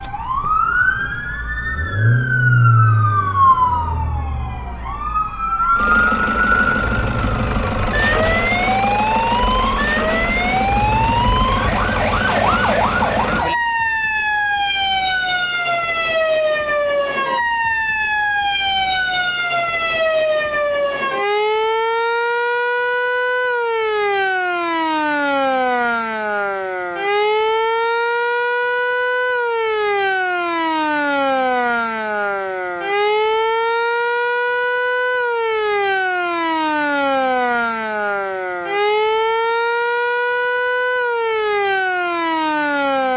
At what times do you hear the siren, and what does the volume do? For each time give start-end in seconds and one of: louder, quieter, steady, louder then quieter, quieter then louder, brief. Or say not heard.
0.0-43.1 steady.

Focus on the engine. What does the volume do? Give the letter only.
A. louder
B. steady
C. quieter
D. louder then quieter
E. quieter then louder
E.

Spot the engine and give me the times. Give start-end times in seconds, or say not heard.
0.0-13.4.